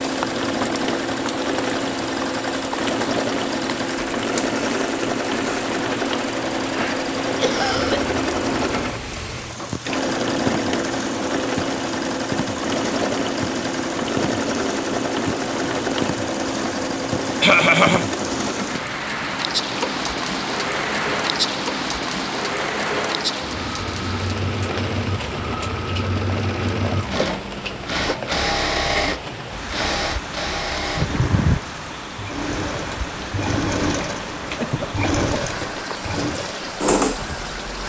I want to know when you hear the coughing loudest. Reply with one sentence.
The loudest moment of the coughing is at 18 seconds.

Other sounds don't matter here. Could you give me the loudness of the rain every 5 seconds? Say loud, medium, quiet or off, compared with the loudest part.
medium, medium, medium, loud, loud, medium, medium, medium.